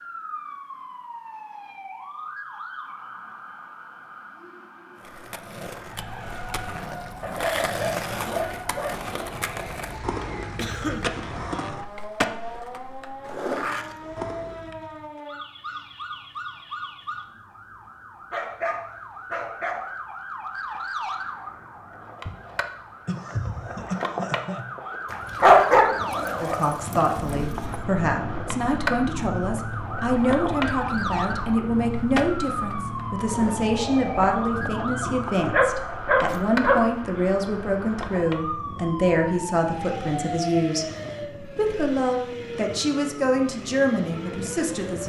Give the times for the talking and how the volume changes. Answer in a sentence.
You can hear the talking from 26.4 to 45.0 s, at a steady volume.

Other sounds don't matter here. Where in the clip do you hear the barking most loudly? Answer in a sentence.
The loudest moment of the barking is at 26 seconds.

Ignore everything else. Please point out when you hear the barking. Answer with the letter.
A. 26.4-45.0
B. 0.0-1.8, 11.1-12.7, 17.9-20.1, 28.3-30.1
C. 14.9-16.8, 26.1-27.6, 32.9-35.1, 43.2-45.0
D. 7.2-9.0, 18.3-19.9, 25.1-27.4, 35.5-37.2
D.